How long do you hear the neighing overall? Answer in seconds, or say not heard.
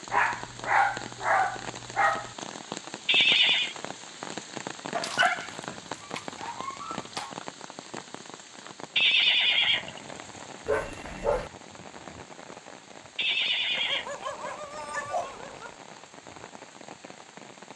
3 s.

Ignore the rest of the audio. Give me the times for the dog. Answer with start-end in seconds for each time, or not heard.
0.1-2.4, 4.9-7.3, 10.7-11.5, 13.8-15.8.